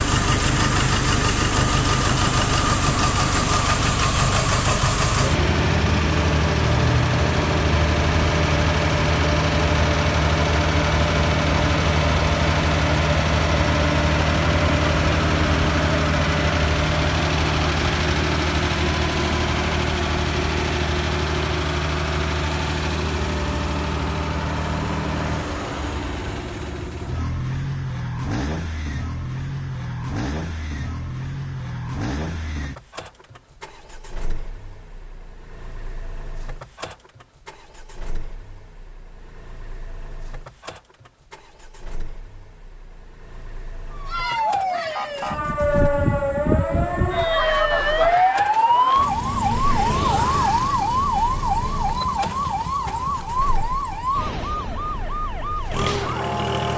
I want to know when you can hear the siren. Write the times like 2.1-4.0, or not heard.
43.9-56.7.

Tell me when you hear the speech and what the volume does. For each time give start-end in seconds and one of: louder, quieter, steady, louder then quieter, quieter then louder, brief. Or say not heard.
not heard.